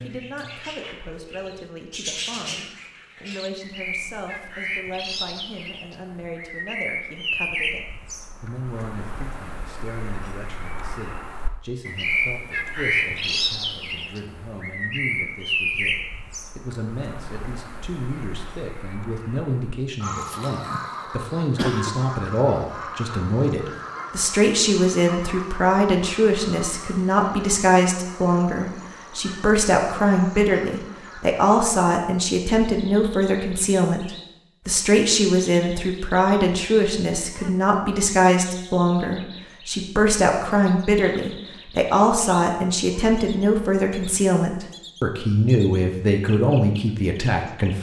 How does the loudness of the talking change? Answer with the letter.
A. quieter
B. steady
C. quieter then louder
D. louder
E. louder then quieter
D.